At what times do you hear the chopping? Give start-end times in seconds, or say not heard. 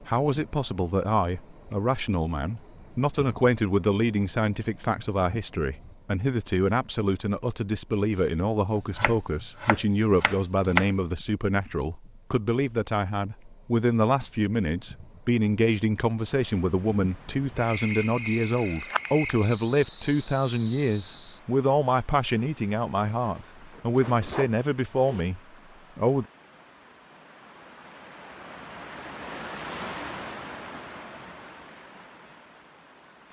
8.8-10.9.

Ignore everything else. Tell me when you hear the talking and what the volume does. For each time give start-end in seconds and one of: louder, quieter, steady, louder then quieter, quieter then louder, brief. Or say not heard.
0.0-26.2 steady.